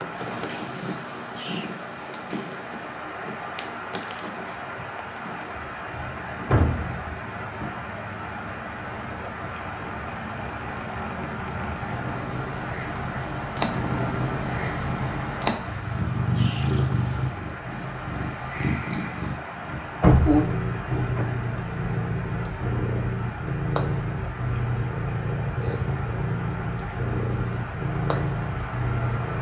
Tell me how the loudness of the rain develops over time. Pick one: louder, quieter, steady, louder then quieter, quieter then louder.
steady.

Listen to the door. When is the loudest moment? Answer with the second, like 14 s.
20 s.